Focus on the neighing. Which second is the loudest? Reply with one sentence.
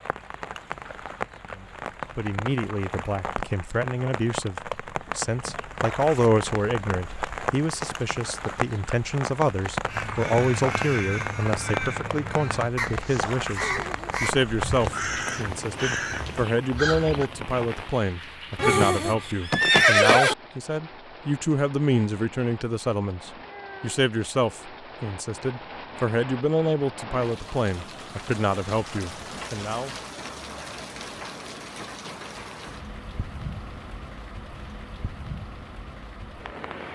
The volume of the neighing peaks at 20 seconds.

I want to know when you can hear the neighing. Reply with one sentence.
The neighing can be heard from 13.6 to 14.2 s and from 18.6 to 20.4 s.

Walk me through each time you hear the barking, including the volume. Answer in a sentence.
You can't hear the barking here.